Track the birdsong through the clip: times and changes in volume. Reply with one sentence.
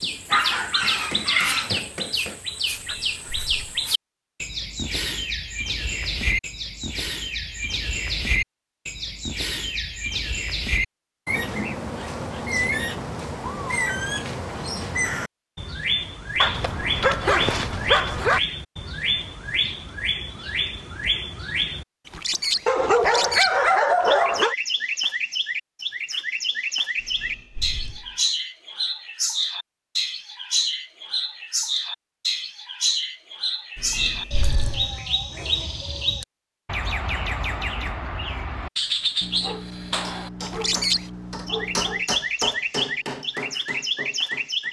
You can hear the birdsong from 0.0 to 44.6 s, at a steady volume.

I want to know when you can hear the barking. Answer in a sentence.
You can hear the barking from 0.3 to 1.8 s, from 16.4 to 18.4 s, from 22.6 to 24.6 s and from 39.2 to 42.0 s.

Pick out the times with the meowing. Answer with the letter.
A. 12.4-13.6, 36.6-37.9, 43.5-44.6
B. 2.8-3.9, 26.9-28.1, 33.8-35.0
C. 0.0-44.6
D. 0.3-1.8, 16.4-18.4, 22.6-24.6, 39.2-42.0
B.